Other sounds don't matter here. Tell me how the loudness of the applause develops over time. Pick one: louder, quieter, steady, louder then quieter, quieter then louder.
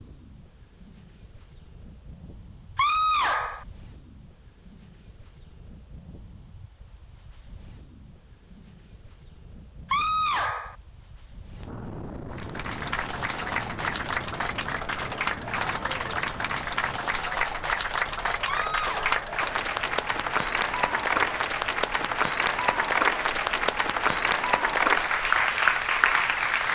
louder.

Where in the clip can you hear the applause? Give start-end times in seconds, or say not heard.
12.3-26.7.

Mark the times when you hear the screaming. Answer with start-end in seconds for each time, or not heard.
2.8-3.6, 9.9-10.8, 18.4-19.1.